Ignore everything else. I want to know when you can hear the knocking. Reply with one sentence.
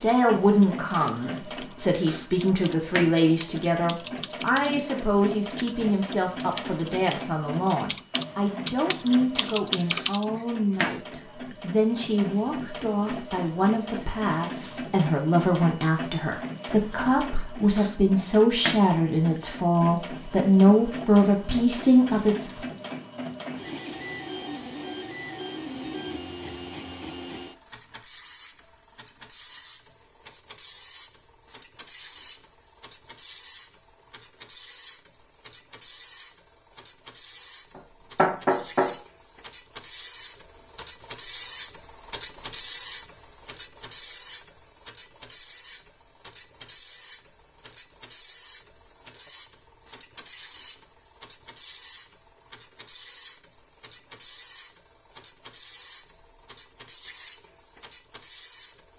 You can hear the knocking from 37.8 to 39.0 s.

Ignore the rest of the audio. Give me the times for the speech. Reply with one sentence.
The speech can be heard from 0.0 to 22.6 s.